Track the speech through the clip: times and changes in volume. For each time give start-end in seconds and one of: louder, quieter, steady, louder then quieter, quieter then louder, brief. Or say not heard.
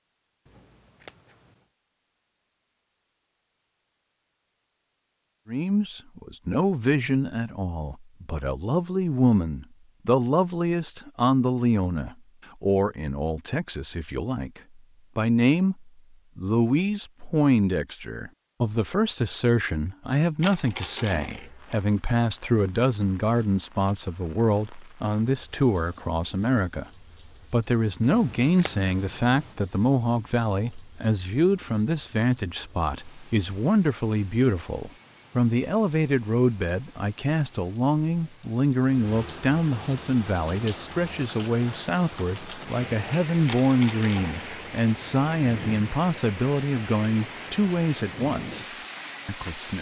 5.5-26.9 steady
27.5-49.7 steady.